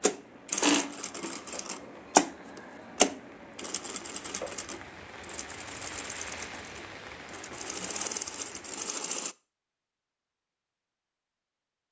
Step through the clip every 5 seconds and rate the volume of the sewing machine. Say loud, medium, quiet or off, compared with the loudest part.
loud, medium, off.